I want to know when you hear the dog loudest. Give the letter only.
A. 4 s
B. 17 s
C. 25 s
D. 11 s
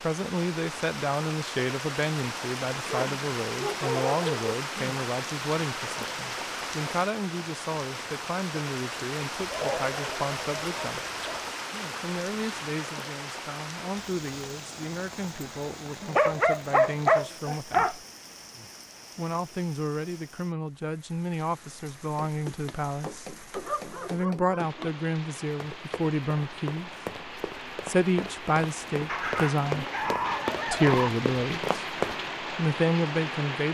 B.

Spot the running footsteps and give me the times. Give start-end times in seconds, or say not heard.
22.1-32.2.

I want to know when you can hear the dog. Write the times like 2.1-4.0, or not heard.
2.9-4.5, 9.4-11.4, 16.0-17.9, 23.5-24.9, 29.1-31.1.